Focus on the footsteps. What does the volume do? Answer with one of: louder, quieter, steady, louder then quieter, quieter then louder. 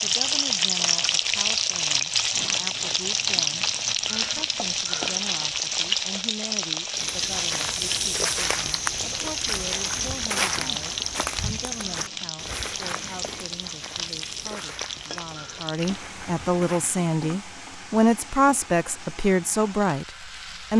quieter.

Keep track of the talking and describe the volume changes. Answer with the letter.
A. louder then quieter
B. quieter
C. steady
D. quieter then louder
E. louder
E.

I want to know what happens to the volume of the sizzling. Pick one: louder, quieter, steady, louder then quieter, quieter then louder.
quieter.